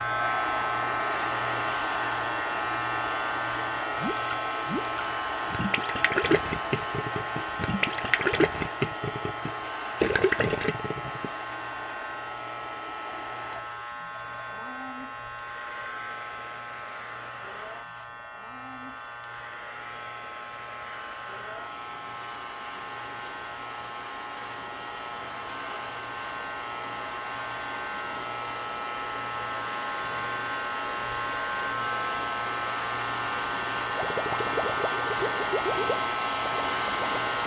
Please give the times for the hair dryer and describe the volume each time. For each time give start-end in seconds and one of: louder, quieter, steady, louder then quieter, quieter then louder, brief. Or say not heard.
0.0-37.4 quieter then louder.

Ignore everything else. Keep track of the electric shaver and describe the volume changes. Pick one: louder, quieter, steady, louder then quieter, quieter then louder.
quieter then louder.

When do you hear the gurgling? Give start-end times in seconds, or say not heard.
4.0-11.3, 34.0-37.2.